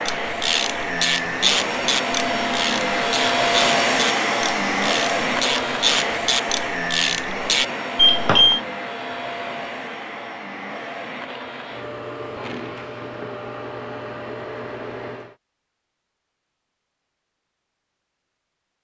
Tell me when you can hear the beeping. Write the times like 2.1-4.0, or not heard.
8.0-8.6.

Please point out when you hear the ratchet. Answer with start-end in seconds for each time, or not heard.
0.1-7.7.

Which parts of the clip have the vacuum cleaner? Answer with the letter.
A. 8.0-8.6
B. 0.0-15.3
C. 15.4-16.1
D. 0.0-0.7
B.